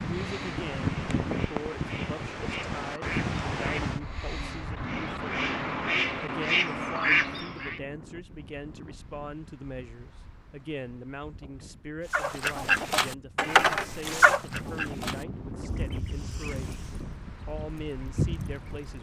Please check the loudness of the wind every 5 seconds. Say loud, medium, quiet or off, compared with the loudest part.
loud, quiet, quiet, medium.